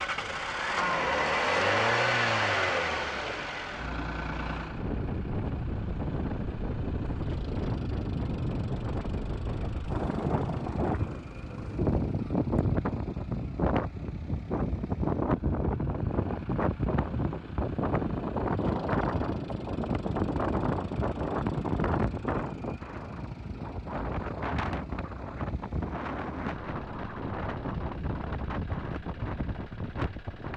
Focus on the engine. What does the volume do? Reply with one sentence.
The loudness of the engine goes down.